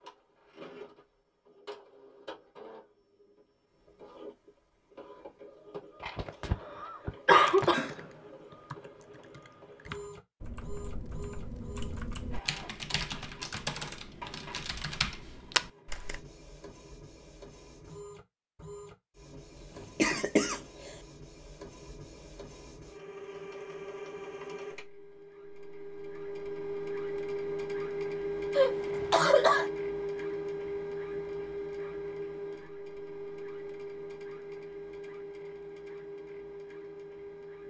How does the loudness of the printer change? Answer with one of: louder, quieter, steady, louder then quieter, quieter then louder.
louder.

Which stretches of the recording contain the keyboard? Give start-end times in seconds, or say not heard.
7.3-16.2.